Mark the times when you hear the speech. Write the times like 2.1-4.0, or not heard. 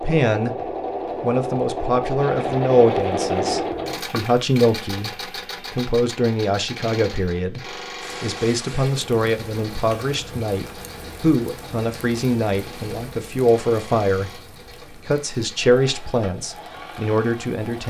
0.0-0.6, 1.2-17.8.